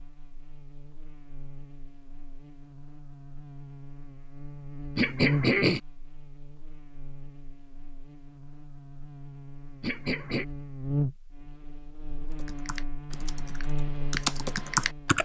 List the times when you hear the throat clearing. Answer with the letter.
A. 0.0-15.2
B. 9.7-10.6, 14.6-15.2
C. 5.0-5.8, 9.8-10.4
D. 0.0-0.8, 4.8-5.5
C.